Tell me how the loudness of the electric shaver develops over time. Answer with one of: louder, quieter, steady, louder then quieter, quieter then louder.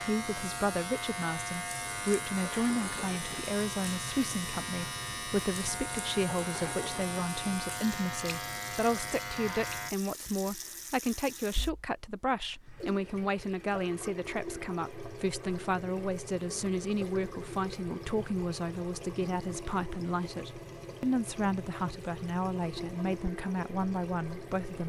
steady.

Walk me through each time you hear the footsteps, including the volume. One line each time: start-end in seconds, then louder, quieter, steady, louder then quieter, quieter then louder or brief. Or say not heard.
not heard.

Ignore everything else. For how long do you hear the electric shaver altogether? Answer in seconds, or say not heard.
10 s.